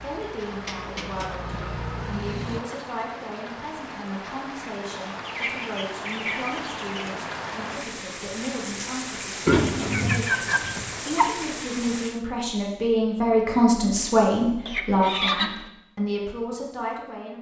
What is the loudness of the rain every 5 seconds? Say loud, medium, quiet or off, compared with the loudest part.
medium, loud, loud, off.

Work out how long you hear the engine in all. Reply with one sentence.
You can hear the engine for 3 seconds altogether.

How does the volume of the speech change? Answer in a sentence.
The volume of the speech goes up.